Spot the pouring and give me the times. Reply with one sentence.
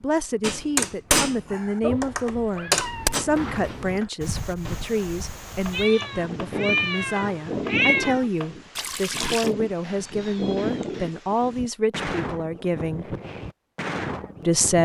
You can hear the pouring from 2.9 to 4.0 s and from 8.8 to 9.5 s.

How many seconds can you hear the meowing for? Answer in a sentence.
You can hear the meowing for 5 seconds altogether.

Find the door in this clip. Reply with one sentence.
You can't hear the door here.